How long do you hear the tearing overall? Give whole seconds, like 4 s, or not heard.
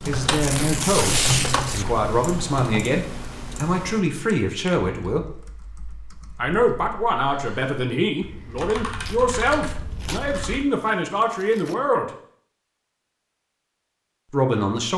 4 s.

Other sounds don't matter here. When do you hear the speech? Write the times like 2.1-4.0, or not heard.
0.1-5.3, 6.4-12.1, 14.3-14.9.